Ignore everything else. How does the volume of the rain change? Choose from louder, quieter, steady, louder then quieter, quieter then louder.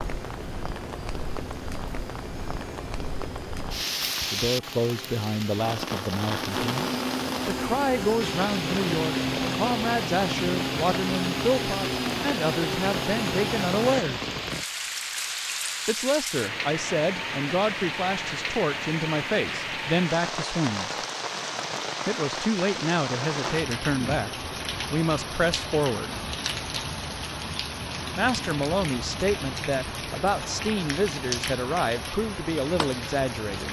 steady.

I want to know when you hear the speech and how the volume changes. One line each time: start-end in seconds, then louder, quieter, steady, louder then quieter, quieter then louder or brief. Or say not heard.
4.2-14.3 steady
15.8-20.9 steady
22.1-24.3 brief
24.9-26.1 brief
28.1-33.6 steady.